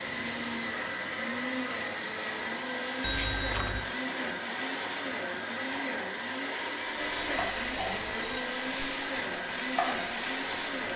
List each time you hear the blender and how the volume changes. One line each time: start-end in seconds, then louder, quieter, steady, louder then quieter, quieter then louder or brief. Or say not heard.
0.0-10.9 steady.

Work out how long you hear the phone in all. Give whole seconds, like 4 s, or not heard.
2 s.